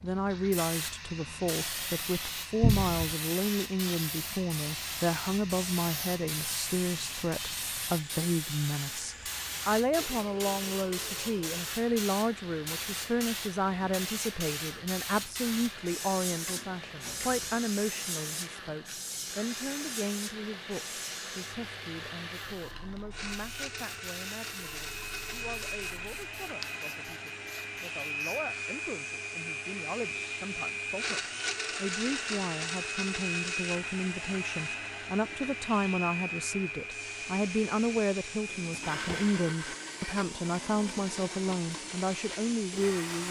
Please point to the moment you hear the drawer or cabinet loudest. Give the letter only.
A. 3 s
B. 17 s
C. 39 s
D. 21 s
A.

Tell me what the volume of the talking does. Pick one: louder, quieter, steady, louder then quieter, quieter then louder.
quieter then louder.